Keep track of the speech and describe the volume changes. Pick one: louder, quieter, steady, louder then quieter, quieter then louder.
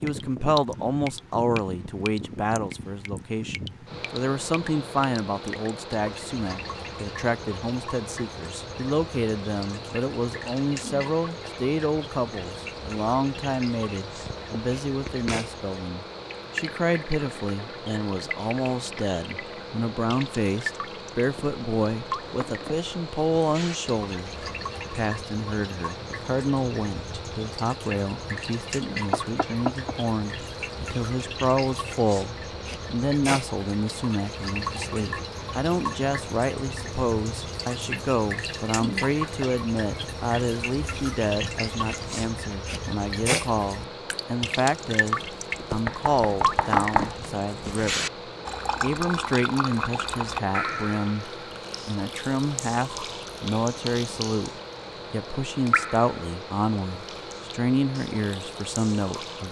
steady.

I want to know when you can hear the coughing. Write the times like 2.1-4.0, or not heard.
not heard.